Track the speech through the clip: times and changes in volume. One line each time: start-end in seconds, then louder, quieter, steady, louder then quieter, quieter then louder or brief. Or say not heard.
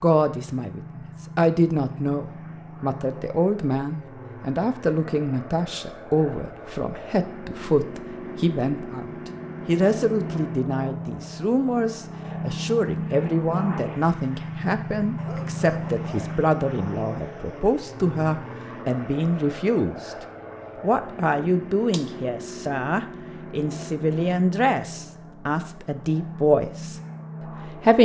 0.0-28.0 steady.